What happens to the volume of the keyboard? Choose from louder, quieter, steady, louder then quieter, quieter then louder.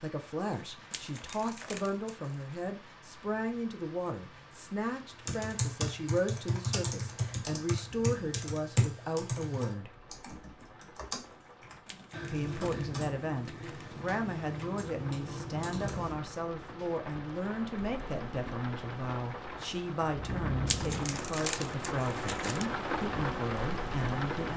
quieter.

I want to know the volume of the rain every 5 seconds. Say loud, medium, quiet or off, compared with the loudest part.
quiet, quiet, quiet, medium, loud.